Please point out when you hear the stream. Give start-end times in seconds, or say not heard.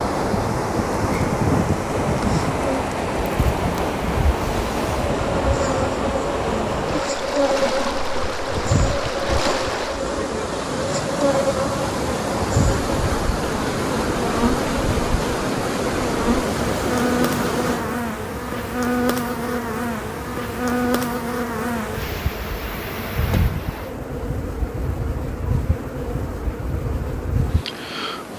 0.0-28.3.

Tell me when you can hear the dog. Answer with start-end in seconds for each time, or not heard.
not heard.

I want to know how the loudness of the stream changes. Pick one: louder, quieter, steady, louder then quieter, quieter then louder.
quieter.